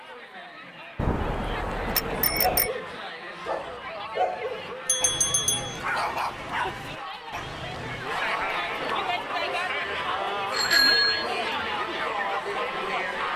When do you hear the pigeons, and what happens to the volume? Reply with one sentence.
The pigeons can't be heard in this clip.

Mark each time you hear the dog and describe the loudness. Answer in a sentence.
The dog can be heard from 2.4 to 11.8 s, getting quieter.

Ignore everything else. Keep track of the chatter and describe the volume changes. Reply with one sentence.
The loudness of the chatter goes up.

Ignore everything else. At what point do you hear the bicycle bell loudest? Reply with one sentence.
The loudest moment of the bicycle bell is at 11 seconds.